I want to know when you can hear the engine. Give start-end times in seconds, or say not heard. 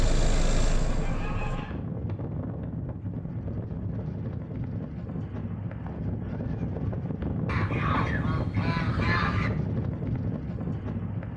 0.0-1.6.